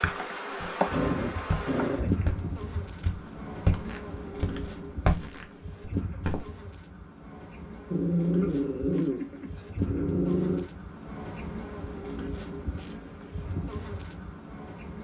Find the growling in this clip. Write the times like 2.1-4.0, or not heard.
0.8-3.0, 7.9-10.7.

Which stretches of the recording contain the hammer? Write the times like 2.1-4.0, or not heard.
not heard.